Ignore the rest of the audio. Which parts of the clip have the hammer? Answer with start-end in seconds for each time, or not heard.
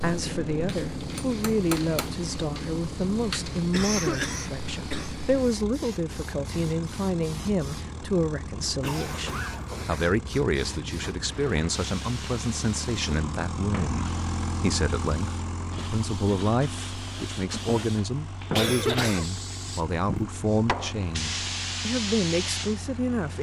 0.7-2.1.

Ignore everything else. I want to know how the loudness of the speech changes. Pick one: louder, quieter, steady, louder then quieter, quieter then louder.
steady.